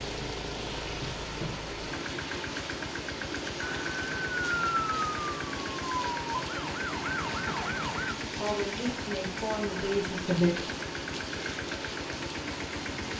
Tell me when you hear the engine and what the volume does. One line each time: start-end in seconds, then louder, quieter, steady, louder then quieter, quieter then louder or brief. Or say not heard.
0.0-13.1 steady.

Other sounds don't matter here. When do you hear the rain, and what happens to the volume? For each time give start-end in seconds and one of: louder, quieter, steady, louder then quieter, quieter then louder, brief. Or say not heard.
0.0-13.1 steady.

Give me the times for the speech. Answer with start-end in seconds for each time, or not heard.
8.3-10.6.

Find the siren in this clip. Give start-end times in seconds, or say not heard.
3.6-8.2.